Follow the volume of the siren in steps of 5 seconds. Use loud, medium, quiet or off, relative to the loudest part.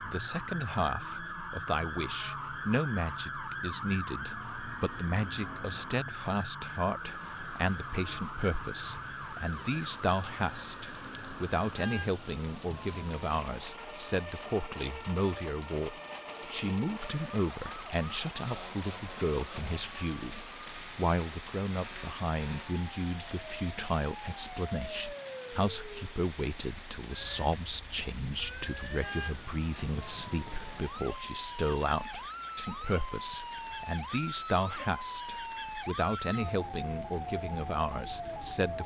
loud, loud, medium, medium, medium, medium, loud, loud.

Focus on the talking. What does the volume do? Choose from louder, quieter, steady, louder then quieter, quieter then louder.
steady.